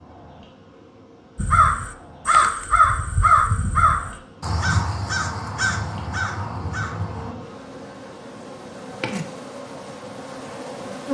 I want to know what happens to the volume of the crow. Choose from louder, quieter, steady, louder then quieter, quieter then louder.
quieter.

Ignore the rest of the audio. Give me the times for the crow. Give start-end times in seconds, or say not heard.
1.4-7.3.